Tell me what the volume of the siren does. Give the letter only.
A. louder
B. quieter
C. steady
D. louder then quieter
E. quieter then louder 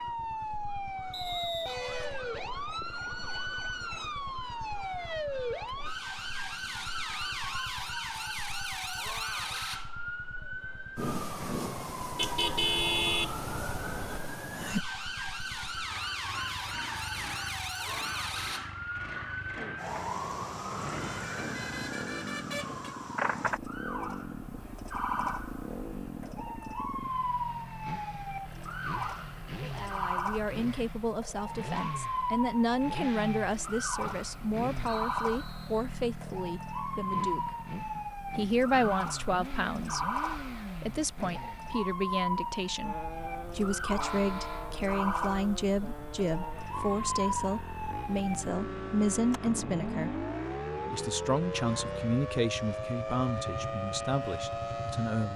C.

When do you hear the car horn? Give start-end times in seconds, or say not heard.
12.2-14.2, 20.9-22.9, 44.0-44.9.